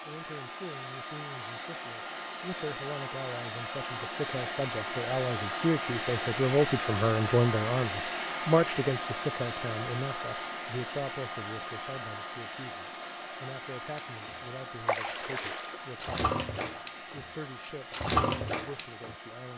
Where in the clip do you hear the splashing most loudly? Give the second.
18 s.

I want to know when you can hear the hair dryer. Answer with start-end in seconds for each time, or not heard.
0.0-19.5.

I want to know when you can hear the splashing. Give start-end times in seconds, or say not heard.
13.9-17.2, 17.9-19.1.